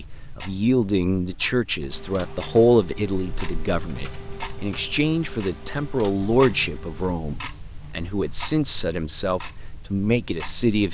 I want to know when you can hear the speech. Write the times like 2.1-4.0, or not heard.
0.0-10.8.